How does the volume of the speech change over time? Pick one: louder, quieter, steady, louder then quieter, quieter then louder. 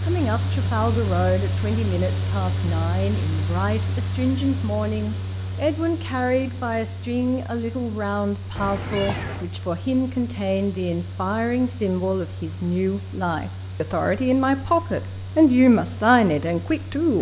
louder.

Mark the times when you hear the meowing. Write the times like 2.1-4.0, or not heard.
8.6-9.4.